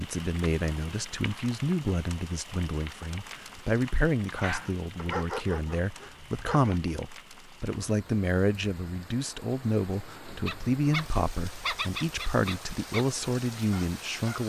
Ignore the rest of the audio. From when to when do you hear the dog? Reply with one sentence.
You can hear the dog from 4.2 to 6.8 s and from 10.4 to 14.4 s.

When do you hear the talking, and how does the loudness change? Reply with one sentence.
The talking can be heard from 0.0 to 14.4 s, at a steady volume.